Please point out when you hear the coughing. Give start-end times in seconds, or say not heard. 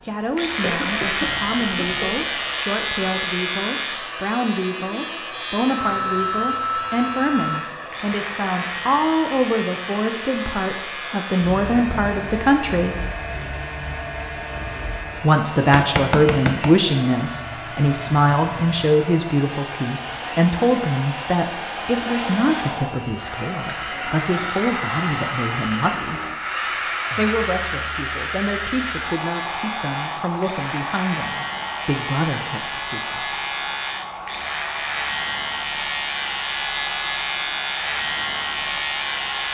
0.6-2.2.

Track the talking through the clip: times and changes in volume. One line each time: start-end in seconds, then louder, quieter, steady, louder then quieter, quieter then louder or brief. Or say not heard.
0.0-13.1 louder
15.2-26.2 quieter
27.1-33.2 steady.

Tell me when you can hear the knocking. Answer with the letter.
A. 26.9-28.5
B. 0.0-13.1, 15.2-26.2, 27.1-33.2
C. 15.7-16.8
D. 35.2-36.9
C.